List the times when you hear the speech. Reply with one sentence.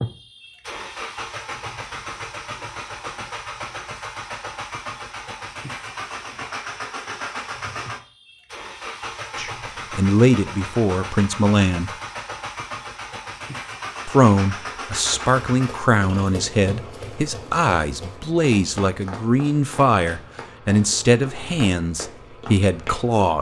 The speech can be heard from 9.3 to 11.9 s and from 14.1 to 23.3 s.